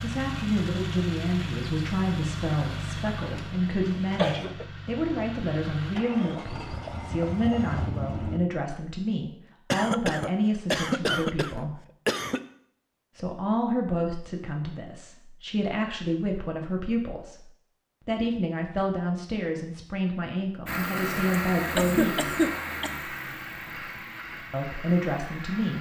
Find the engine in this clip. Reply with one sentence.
You can hear the engine from 0.0 to 8.4 s and from 20.6 to 25.7 s.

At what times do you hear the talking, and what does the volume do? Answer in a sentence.
The talking can be heard from 0.0 to 11.8 s, at a steady volume; from 13.2 to 22.3 s, at a steady volume; and briefly from 24.5 to 25.7 s.